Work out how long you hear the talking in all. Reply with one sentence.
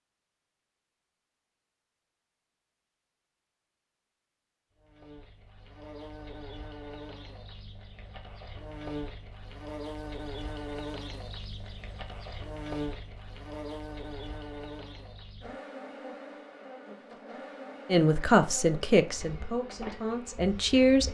The talking can be heard for 3 seconds in total.